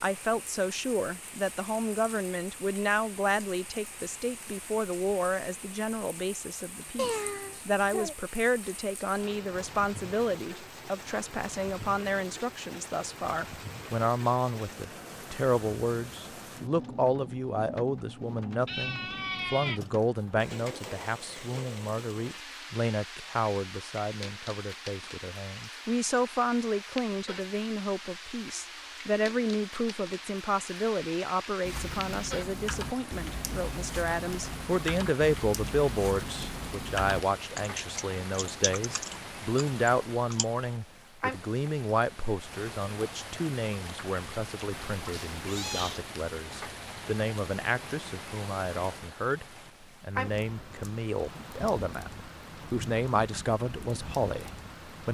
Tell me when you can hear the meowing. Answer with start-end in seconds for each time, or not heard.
7.0-8.2, 18.6-19.8, 44.7-46.0.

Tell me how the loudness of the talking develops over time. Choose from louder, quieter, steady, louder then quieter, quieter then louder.
steady.